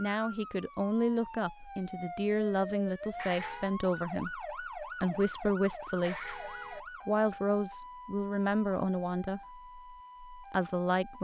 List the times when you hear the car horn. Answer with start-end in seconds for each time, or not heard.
3.0-3.8, 5.8-6.8.